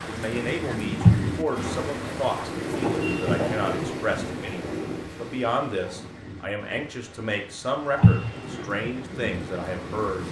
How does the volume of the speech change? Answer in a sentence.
The loudness of the speech stays about the same.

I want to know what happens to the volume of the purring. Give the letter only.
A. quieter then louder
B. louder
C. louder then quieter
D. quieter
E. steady
C.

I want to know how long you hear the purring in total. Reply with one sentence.
You can hear the purring for 5 seconds altogether.